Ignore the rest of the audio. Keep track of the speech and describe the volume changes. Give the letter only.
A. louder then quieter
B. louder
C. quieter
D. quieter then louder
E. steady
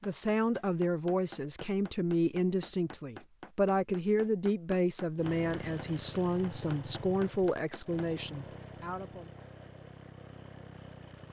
E.